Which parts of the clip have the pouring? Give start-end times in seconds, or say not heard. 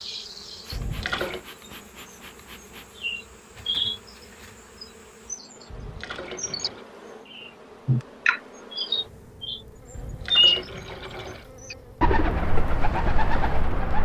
0.7-1.4, 5.7-6.8, 9.9-11.5.